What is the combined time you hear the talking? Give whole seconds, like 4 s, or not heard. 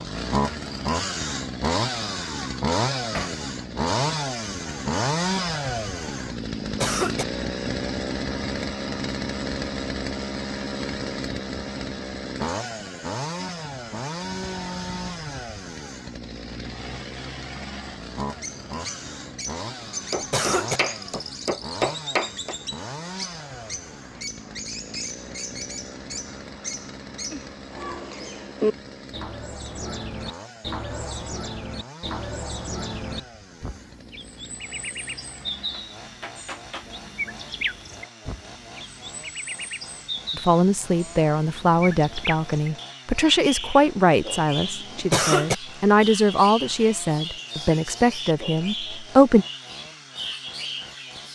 9 s.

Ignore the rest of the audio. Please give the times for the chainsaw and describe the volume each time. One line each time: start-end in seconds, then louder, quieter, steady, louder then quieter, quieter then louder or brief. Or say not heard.
0.0-51.3 quieter.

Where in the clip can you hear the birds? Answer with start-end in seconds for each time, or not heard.
18.2-51.3.